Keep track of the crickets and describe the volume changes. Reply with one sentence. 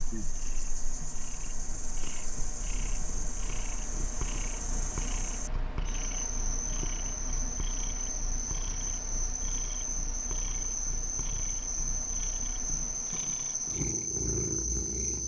The loudness of the crickets goes up.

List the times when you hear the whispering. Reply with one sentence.
The whispering can't be heard in this clip.